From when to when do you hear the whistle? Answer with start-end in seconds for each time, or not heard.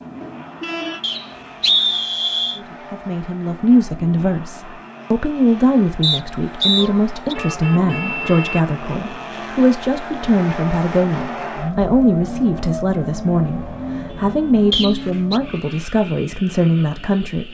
1.0-2.6, 6.0-7.3, 14.7-15.4.